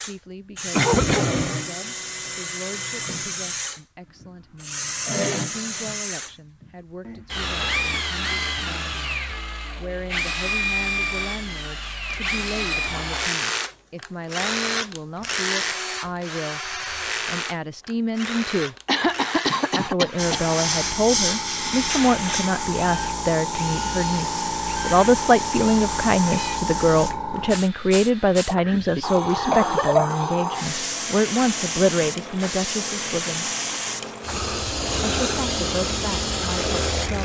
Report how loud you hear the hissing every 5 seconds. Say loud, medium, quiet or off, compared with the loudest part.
off, off, off, off, loud, loud, loud, loud.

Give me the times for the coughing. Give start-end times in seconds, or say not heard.
0.7-1.5, 18.9-20.4, 28.4-30.2.